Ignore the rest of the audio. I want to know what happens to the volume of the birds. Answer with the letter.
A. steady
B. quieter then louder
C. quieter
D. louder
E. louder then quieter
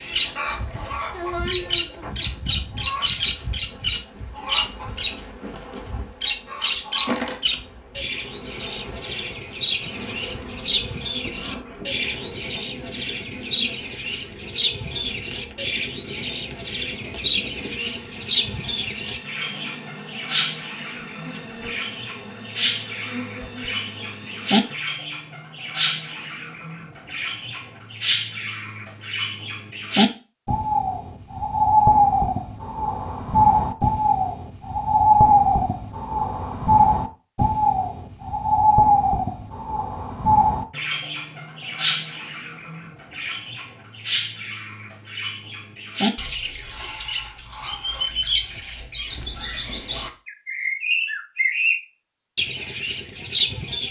E.